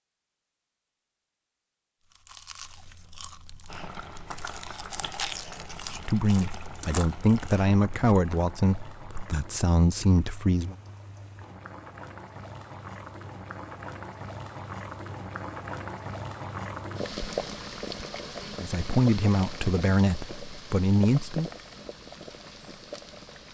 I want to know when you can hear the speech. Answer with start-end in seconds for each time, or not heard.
5.9-10.8, 18.6-21.5.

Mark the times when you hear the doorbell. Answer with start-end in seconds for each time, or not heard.
not heard.